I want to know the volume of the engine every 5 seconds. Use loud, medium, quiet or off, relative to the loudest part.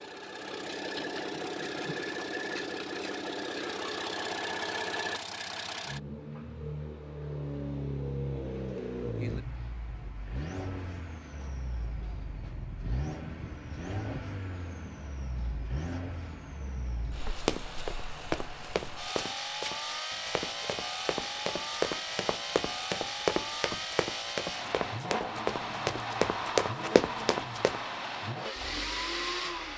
loud, loud, medium, medium, loud, loud.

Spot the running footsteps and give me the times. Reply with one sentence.
You can hear the running footsteps from 17.4 to 27.8 s.